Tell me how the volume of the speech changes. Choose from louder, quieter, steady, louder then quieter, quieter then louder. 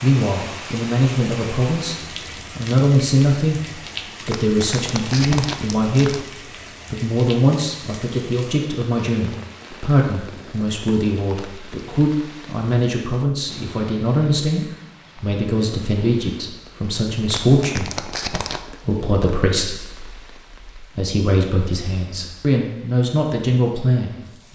steady.